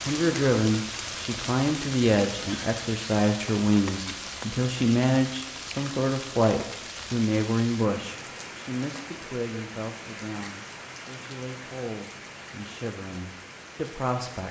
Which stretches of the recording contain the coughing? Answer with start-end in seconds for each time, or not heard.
not heard.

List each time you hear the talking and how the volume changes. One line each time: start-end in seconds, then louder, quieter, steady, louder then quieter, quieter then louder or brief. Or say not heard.
0.1-14.4 quieter.